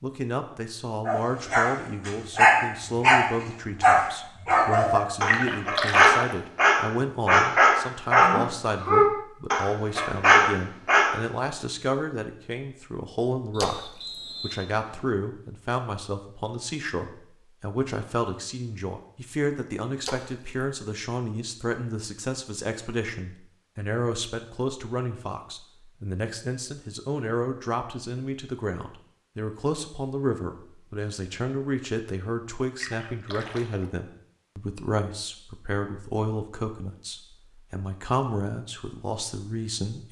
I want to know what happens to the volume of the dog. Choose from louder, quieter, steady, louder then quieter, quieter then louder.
steady.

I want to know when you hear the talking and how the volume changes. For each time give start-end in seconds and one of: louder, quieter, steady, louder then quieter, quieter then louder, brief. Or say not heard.
0.0-40.0 steady.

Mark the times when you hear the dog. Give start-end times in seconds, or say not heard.
1.1-11.2.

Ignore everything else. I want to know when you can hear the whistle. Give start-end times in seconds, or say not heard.
13.5-15.2.